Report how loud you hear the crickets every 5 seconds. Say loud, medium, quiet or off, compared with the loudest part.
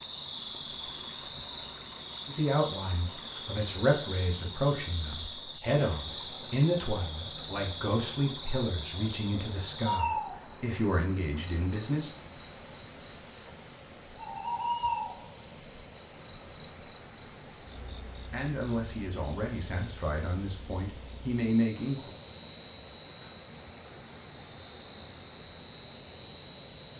loud, loud, loud, medium, quiet, quiet.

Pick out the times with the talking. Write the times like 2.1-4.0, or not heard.
2.2-12.2, 18.3-22.1.